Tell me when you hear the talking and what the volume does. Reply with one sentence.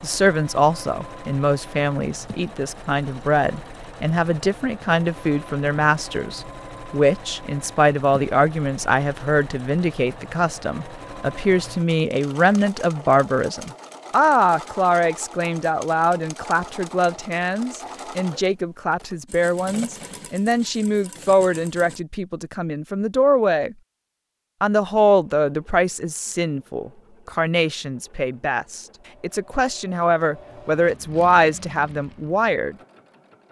You can hear the talking from 0.0 to 23.8 s, at a steady volume; and from 24.6 to 32.8 s, getting quieter then louder.